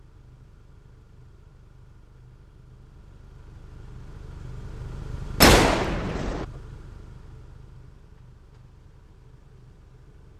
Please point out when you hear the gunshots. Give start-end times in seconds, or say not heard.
5.4-6.5.